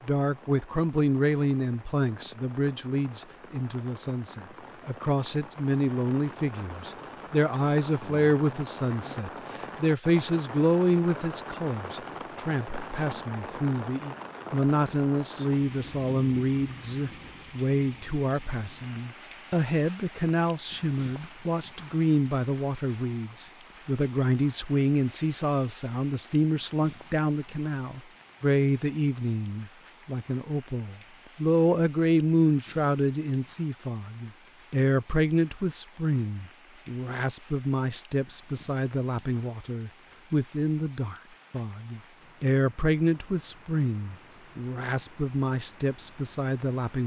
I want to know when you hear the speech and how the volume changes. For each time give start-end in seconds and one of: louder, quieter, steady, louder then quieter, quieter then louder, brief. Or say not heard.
0.0-47.0 steady.